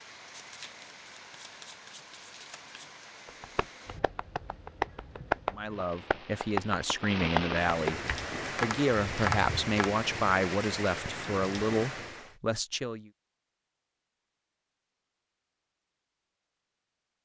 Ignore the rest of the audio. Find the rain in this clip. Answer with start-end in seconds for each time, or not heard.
0.0-12.3.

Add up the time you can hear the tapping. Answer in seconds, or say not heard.
7 s.